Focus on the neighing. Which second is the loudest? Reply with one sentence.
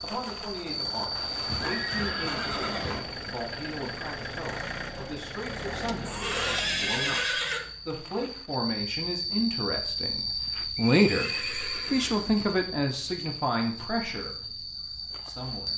The loudest moment of the neighing is at 7 seconds.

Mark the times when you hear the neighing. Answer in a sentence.
You can hear the neighing from 1.1 to 3.0 s, from 6.0 to 7.6 s and from 10.8 to 12.4 s.